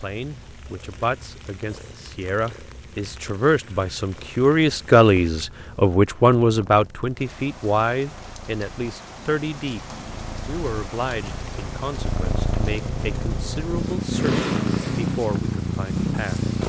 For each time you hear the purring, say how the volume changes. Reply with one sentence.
The purring can be heard from 0.0 to 16.6 s, getting louder.